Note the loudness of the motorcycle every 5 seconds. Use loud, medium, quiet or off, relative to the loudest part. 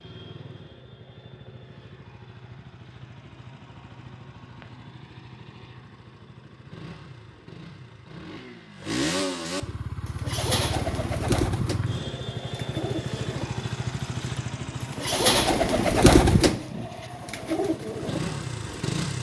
quiet, loud, loud, loud.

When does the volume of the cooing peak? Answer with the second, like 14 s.
16 s.